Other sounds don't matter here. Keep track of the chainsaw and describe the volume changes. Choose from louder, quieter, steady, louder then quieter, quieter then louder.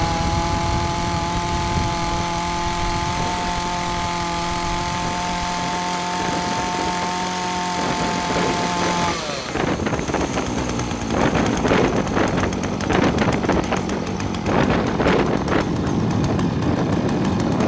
steady.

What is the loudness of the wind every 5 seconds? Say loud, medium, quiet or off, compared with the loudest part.
medium, medium, loud, loud.